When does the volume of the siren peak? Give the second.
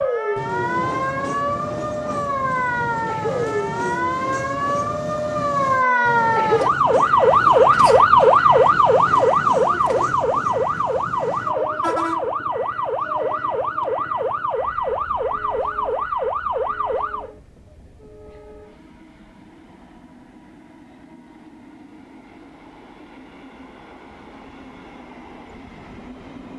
8 s.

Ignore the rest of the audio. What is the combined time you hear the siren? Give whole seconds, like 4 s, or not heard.
17 s.